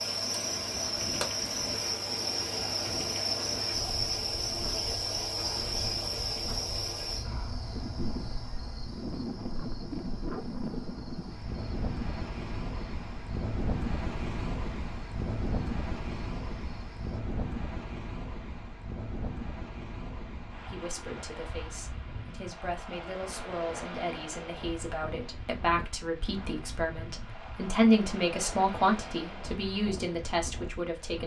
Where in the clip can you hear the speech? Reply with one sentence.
You can hear the speech from 20.6 to 31.2 s.